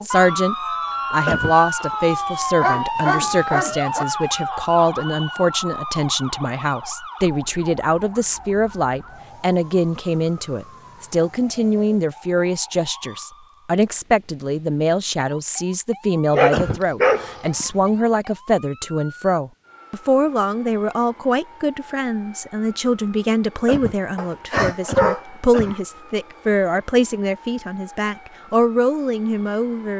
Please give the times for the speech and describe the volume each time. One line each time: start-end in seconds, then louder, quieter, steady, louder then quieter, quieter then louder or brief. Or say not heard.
0.0-29.9 steady.